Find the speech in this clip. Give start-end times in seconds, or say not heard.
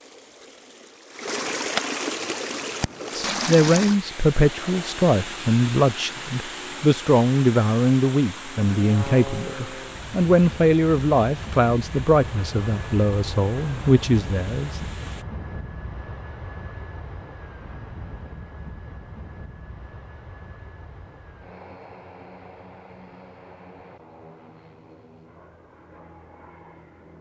3.2-14.8.